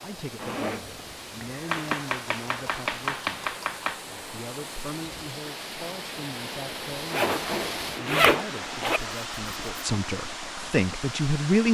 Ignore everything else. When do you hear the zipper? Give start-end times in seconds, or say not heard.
0.3-1.9, 7.1-9.0.